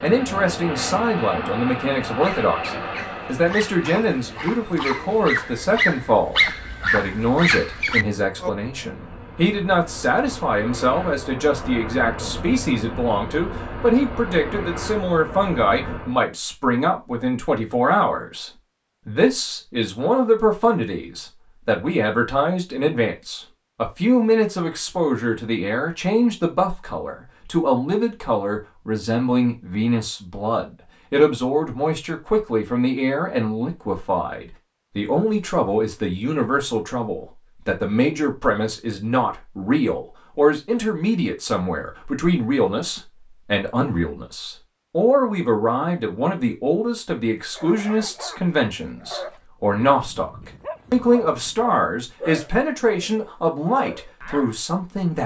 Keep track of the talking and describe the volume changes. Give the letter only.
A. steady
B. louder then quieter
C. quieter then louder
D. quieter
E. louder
A.